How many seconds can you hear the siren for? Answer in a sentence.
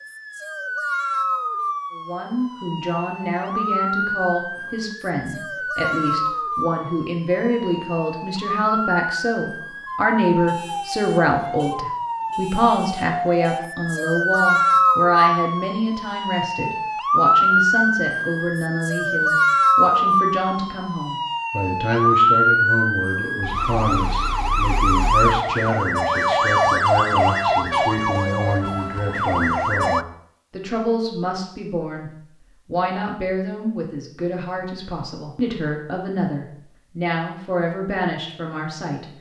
The siren can be heard for 30 seconds in total.